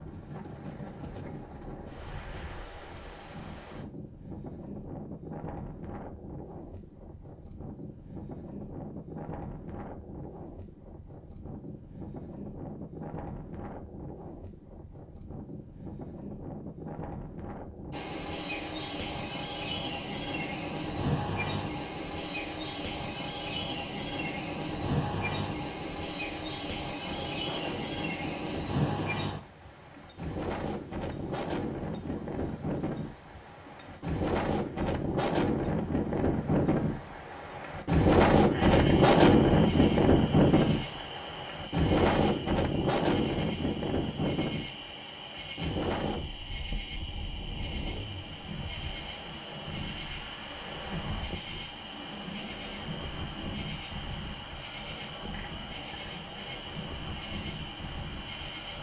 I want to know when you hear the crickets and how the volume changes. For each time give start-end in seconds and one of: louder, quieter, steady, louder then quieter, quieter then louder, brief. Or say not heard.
17.9-58.7 quieter.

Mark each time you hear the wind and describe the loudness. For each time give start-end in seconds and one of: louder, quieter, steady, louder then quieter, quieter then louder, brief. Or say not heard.
0.0-58.7 louder then quieter.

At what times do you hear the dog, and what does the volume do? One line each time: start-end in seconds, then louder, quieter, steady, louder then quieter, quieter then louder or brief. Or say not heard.
not heard.